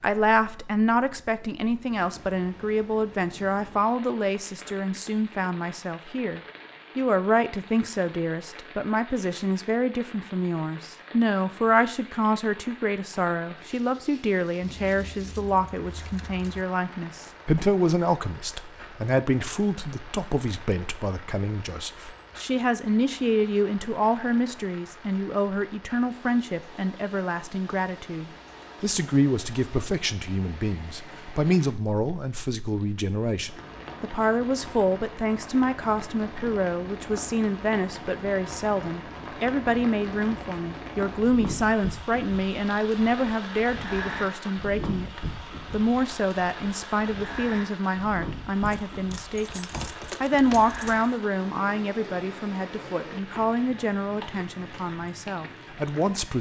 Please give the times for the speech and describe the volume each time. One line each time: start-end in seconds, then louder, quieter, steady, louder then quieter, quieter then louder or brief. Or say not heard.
0.0-56.3 steady.